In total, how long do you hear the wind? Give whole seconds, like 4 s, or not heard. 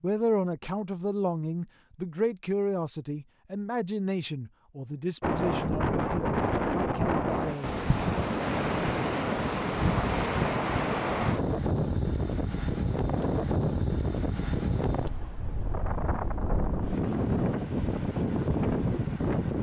14 s.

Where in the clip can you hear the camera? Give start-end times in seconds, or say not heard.
not heard.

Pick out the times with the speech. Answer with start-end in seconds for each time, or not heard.
0.0-7.8.